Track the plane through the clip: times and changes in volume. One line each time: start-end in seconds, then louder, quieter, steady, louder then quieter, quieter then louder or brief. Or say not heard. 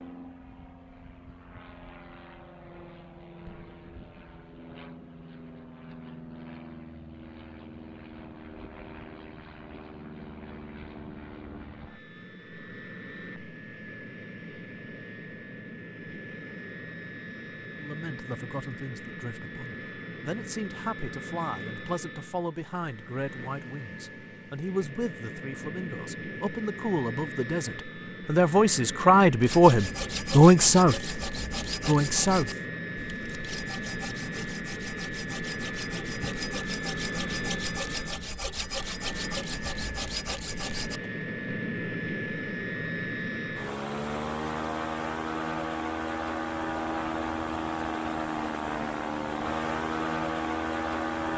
0.0-51.3 louder.